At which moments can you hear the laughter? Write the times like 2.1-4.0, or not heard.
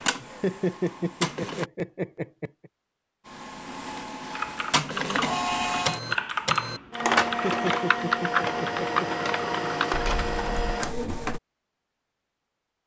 0.2-2.7, 7.2-9.2.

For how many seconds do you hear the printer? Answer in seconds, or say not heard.
10 s.